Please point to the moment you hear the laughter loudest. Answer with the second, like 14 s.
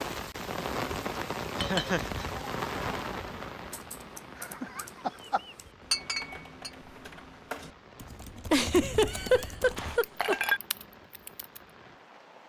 9 s.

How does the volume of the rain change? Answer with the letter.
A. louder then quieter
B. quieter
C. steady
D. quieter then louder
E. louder
B.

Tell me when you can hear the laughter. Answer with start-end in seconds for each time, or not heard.
1.6-2.2, 4.4-5.5, 8.5-10.3.